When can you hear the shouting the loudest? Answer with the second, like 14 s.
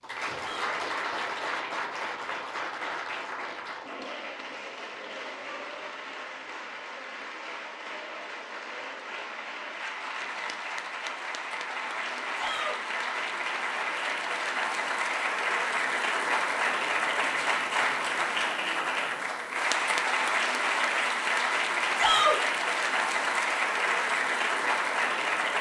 22 s.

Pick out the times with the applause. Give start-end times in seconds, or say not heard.
0.0-25.5.